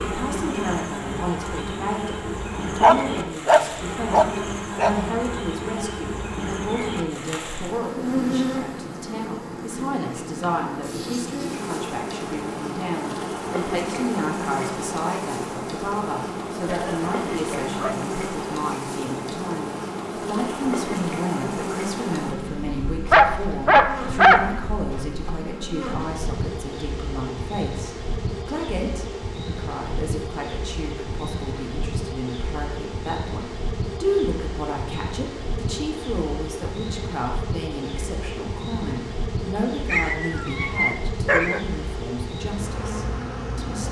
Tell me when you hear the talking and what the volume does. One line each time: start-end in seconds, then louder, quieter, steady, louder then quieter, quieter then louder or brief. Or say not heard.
0.1-43.8 steady.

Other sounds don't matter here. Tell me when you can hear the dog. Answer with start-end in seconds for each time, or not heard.
2.5-5.0, 16.6-18.1, 23.1-24.6, 39.9-41.6.